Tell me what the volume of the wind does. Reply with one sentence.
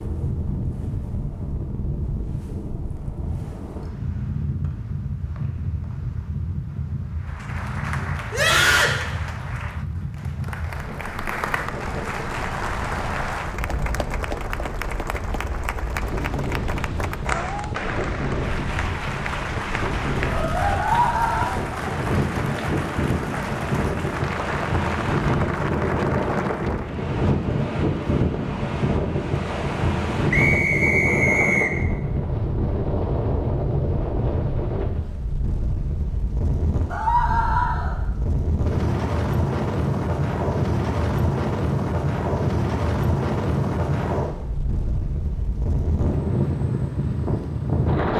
The volume of the wind goes up.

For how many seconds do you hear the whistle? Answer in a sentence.
The whistle can be heard for 3 seconds in total.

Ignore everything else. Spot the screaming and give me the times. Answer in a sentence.
The screaming can be heard from 8.3 to 8.9 s, from 20.8 to 21.6 s and from 36.9 to 38.0 s.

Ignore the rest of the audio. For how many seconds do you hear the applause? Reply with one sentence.
The applause can be heard for 20 seconds in total.